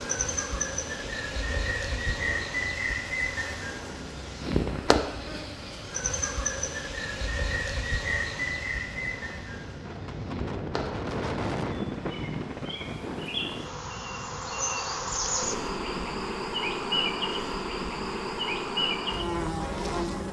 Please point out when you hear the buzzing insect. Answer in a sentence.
You can hear the buzzing insect from 0.0 to 20.2 s.